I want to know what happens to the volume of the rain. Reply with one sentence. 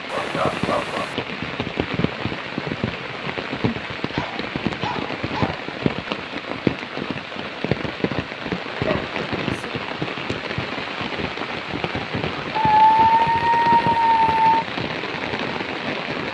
The loudness of the rain stays about the same.